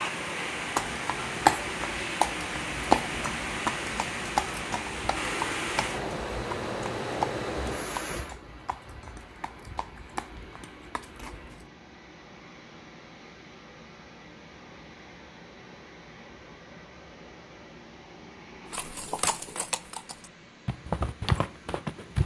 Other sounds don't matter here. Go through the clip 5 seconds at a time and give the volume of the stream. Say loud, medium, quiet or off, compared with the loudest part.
loud, loud, quiet, quiet, quiet.